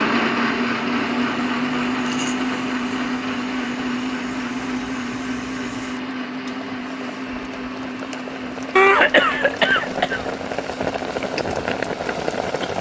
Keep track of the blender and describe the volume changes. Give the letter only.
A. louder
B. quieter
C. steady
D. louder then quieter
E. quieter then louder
B.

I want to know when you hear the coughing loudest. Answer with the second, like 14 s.
9 s.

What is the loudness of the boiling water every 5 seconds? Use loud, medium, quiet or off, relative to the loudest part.
quiet, medium, loud.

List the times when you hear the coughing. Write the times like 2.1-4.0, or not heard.
8.8-10.2.